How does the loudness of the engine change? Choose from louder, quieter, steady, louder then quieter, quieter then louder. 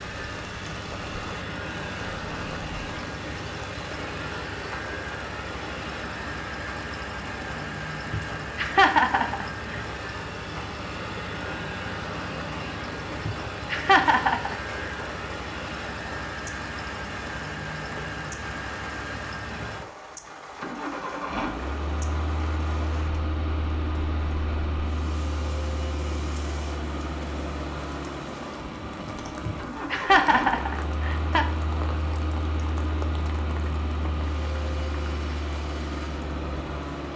steady.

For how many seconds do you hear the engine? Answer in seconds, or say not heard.
37 s.